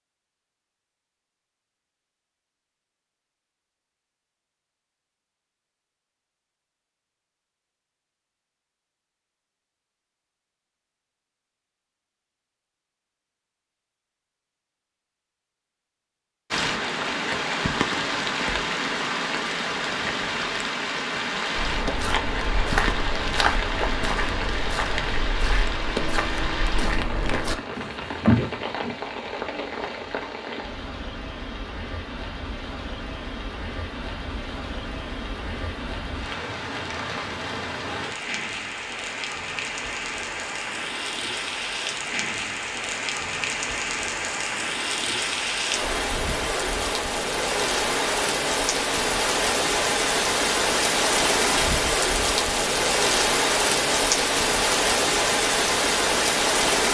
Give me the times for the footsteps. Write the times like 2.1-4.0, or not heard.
21.6-28.9.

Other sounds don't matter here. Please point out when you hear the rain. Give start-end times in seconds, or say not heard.
16.5-56.8.